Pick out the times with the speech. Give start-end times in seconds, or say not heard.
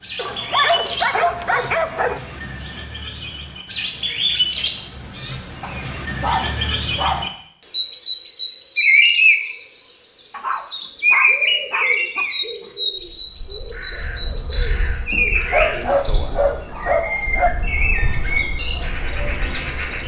not heard.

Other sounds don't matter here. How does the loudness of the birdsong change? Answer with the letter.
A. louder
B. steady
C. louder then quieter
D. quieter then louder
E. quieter
C.